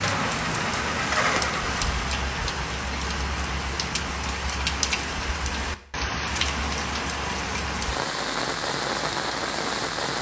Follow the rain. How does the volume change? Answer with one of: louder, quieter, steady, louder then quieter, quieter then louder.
steady.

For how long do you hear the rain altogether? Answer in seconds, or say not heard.
10 s.